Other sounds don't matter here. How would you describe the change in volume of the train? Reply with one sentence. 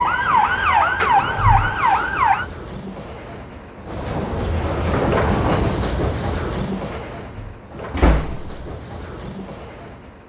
The loudness of the train goes up, then down.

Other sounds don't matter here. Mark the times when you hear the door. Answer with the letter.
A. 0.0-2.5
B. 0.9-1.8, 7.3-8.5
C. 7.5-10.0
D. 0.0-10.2
B.